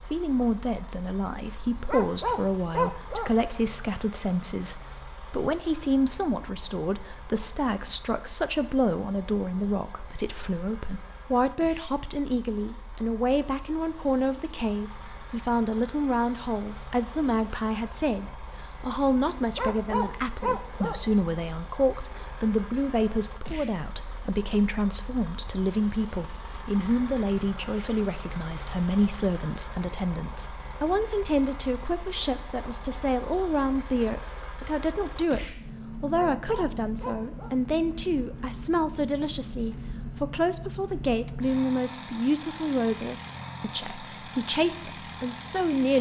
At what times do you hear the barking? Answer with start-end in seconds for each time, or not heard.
1.8-3.3, 19.6-21.1, 36.0-37.5.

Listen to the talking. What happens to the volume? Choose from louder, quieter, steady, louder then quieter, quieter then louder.
steady.